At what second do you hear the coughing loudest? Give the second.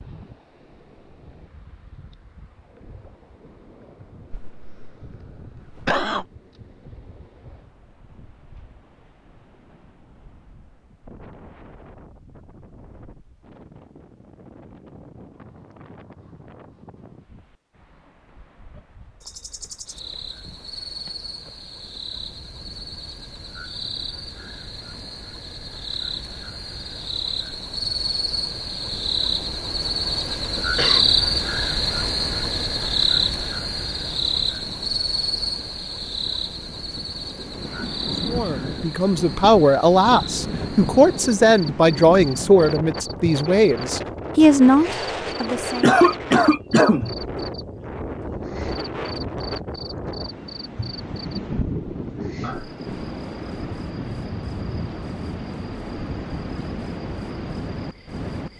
46 s.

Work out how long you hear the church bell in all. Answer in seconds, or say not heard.
not heard.